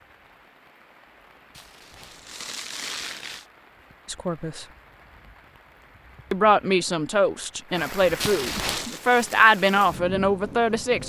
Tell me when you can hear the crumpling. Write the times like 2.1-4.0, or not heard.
1.6-3.5, 8.2-9.0.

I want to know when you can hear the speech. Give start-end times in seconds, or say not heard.
4.0-4.7, 6.3-11.0.